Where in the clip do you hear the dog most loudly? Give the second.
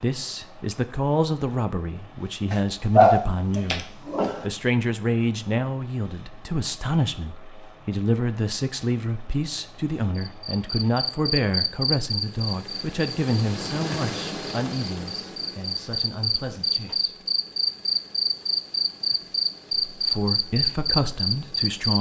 3 s.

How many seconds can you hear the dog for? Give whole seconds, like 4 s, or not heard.
2 s.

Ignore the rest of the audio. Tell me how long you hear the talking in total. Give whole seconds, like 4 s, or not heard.
19 s.